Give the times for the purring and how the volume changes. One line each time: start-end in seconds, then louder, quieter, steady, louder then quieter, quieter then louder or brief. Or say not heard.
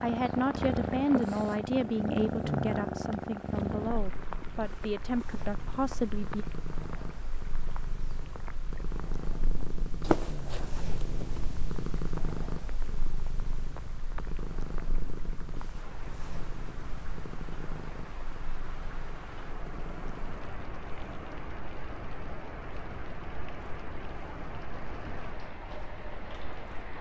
0.0-26.9 quieter.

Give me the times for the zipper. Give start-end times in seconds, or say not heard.
10.0-11.4.